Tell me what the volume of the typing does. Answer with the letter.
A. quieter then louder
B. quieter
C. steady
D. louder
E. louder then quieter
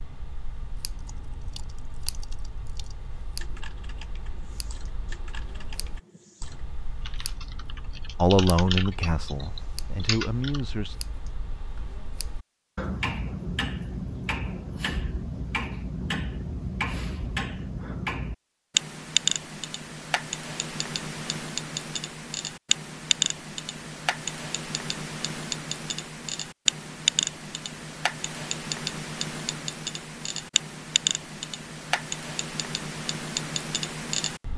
D.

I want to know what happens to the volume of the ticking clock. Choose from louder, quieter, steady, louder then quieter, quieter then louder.
louder.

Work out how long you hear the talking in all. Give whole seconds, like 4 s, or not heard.
3 s.